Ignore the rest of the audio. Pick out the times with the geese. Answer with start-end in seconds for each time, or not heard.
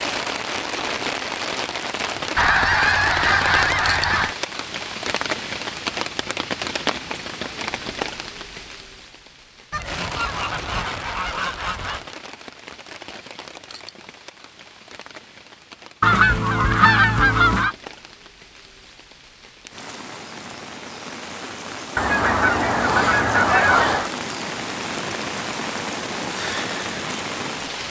2.4-4.3, 9.7-12.1, 16.0-17.8, 21.9-24.1.